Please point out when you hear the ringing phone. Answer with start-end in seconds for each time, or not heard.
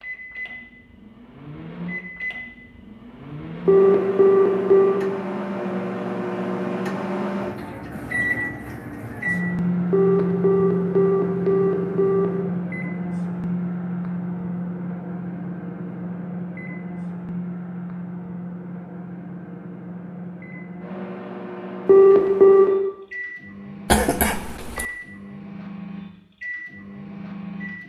3.6-5.0, 9.9-12.2, 21.9-22.7.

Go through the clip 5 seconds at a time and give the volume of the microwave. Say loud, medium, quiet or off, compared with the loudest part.
medium, loud, loud, medium, medium, medium.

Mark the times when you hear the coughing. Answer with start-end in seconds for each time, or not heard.
23.9-24.9.